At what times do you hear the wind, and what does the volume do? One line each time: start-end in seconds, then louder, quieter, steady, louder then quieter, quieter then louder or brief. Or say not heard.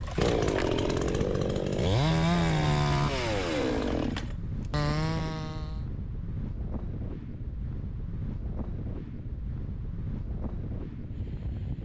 0.0-11.8 steady.